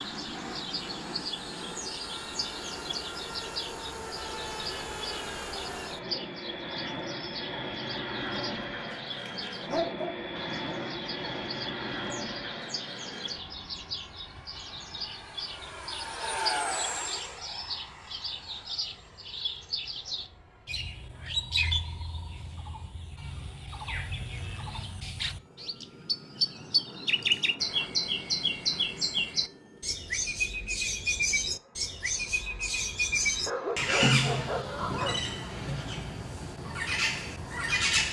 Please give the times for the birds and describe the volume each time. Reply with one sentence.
The birds can be heard from 0.0 to 38.0 s, getting louder.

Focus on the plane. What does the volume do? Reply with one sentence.
The loudness of the plane goes down.